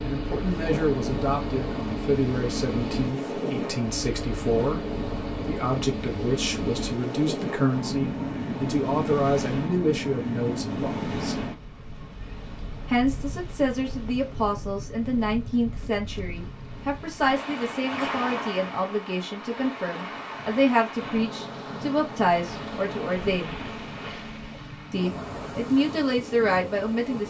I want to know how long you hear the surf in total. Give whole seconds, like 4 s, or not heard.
27 s.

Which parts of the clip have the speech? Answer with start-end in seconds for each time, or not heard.
0.0-11.4, 12.8-23.6, 24.9-27.2.